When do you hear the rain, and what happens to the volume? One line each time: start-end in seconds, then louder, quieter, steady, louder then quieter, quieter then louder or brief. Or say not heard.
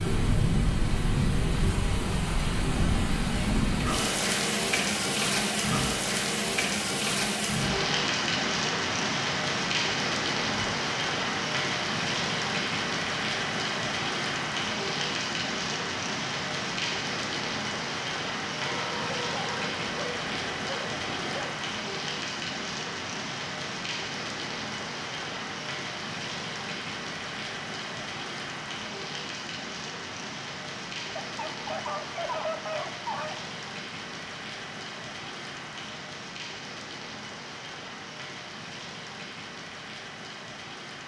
0.0-41.0 quieter.